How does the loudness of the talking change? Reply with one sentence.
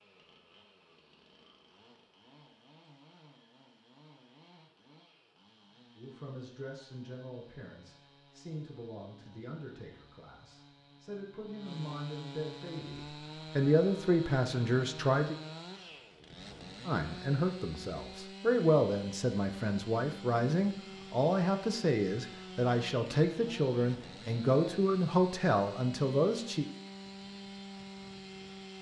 The volume of the talking goes up.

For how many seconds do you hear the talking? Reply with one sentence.
The talking can be heard for 19 seconds in total.